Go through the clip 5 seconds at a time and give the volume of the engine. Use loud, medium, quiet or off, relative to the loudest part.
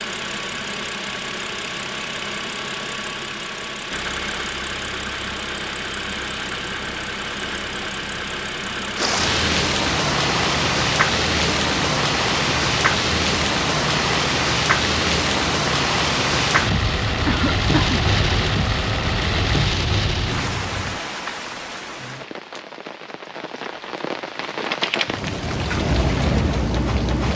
loud, loud, loud, loud, off, off.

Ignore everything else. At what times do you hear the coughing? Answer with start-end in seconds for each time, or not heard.
17.2-18.0.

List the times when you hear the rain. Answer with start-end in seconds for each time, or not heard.
8.9-27.3.